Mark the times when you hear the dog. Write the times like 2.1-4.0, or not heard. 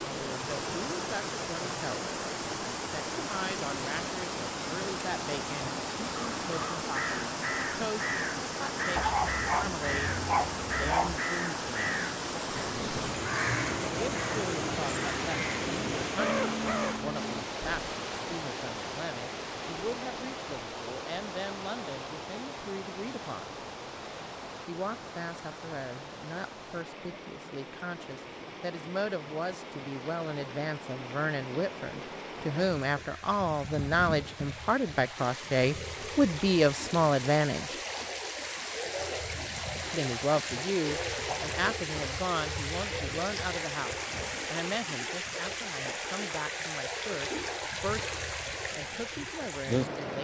8.9-11.2.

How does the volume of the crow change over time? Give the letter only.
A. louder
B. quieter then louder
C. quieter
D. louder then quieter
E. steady
E.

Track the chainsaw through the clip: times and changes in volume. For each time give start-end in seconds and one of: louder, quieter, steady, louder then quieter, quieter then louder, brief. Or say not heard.
not heard.